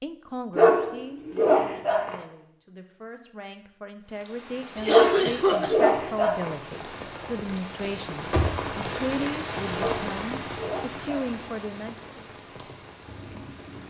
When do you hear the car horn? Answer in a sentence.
You can't hear the car horn here.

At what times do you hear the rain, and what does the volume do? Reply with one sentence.
The rain can be heard from 4.0 to 13.8 s, getting louder then quieter.